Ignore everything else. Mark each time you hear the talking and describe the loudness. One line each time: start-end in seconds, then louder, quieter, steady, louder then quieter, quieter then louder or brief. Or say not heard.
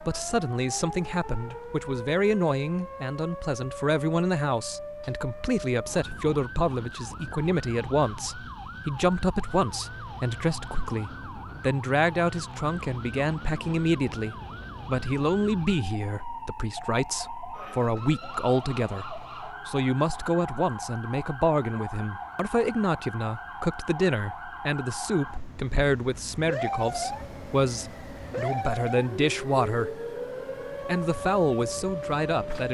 0.1-30.0 steady
30.9-32.6 brief.